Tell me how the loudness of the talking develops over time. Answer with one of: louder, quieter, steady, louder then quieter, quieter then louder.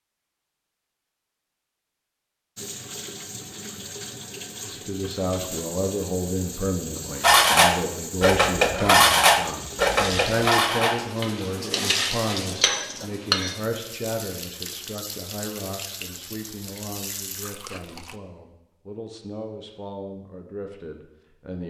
quieter.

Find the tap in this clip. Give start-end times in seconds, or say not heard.
2.5-18.1.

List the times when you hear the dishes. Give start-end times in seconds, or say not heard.
7.2-13.6.